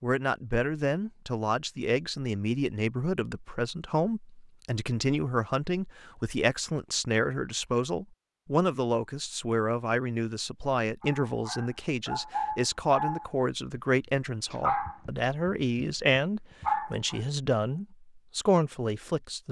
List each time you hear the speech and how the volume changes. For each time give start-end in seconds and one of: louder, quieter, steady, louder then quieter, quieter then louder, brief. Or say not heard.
0.0-19.4 steady.